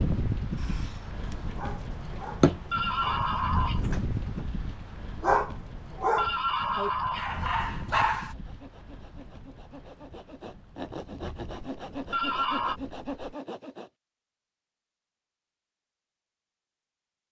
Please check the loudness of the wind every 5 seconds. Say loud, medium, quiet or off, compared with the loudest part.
loud, medium, quiet, off.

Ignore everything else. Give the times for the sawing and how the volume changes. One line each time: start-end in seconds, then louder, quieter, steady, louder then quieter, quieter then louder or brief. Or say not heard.
8.2-13.9 louder.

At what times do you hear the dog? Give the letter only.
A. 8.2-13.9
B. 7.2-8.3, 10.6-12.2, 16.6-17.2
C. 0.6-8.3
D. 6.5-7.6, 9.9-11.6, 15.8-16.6
C.